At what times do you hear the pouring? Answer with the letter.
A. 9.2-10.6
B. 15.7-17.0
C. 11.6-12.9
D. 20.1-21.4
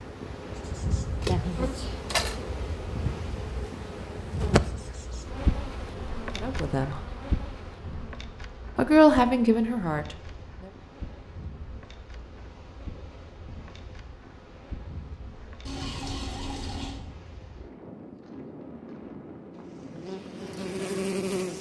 B.